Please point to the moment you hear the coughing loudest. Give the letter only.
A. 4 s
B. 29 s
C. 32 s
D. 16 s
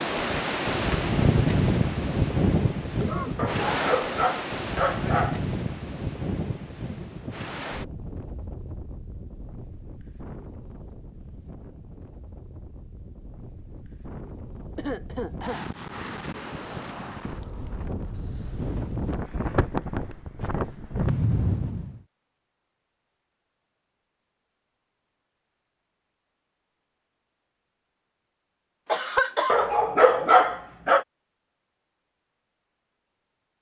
B.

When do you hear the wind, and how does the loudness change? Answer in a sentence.
The wind can be heard from 0.0 to 22.0 s, getting quieter then louder.